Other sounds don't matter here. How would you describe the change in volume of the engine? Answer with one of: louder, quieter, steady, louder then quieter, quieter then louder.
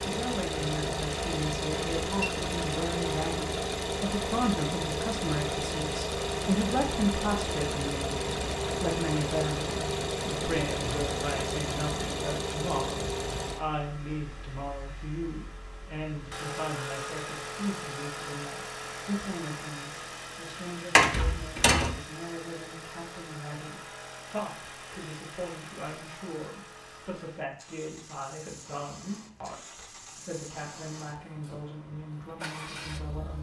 quieter.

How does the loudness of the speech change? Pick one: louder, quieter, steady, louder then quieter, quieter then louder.
quieter.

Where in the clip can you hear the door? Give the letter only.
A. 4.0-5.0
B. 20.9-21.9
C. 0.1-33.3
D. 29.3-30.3
B.